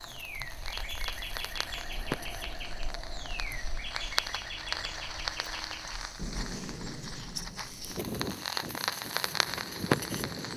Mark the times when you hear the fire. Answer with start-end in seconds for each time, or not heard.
0.0-10.5.